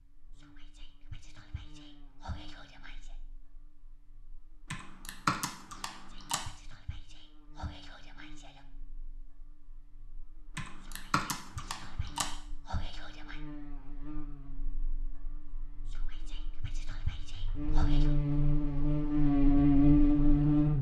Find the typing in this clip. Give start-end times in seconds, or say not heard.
4.7-6.4, 10.6-12.2.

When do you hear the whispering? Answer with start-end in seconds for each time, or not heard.
0.3-3.1, 5.9-8.7, 10.8-13.4, 15.9-18.1.